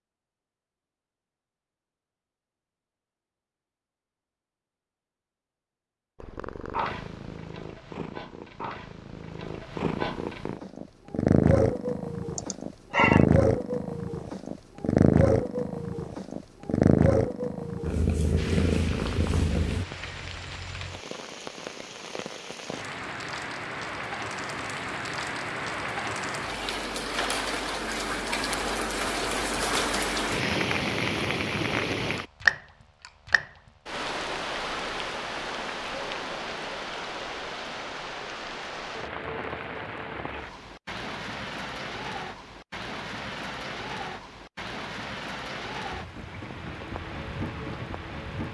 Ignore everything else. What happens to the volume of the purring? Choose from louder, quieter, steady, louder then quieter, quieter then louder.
louder.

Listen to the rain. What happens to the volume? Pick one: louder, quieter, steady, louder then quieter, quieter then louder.
louder then quieter.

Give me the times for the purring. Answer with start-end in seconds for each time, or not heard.
6.2-19.9.